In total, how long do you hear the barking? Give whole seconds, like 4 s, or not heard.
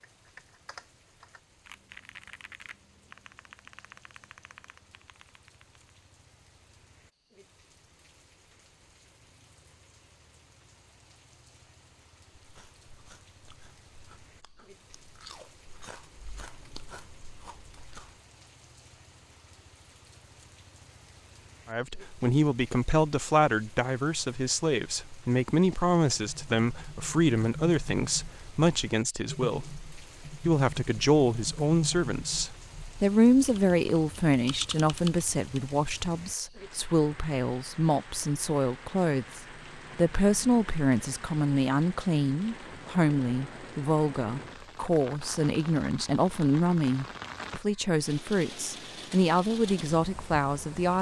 not heard.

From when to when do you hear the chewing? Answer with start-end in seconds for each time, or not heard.
12.3-18.2.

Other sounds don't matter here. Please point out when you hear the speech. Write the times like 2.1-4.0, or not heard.
21.6-50.9.